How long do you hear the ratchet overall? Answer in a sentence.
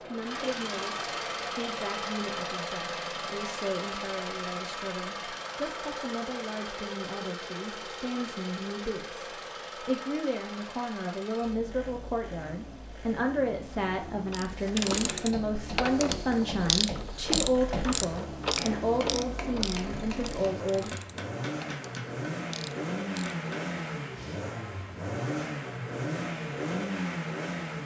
The ratchet can be heard for 9 seconds in total.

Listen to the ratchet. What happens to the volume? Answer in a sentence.
The volume of the ratchet goes down.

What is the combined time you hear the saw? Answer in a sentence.
You can't hear the saw here.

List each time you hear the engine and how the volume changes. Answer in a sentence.
You can hear the engine from 0.0 to 27.8 s, getting quieter then louder.